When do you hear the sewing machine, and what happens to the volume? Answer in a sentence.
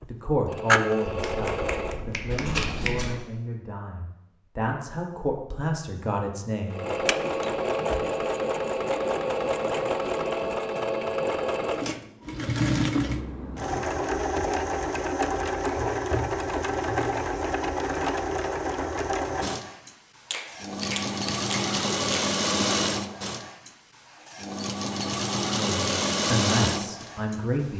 You can hear the sewing machine briefly from 0.0 to 2.0 s; and from 6.7 to 27.7 s, at a steady volume.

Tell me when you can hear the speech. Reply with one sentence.
You can hear the speech from 0.1 to 6.8 s and from 25.6 to 27.7 s.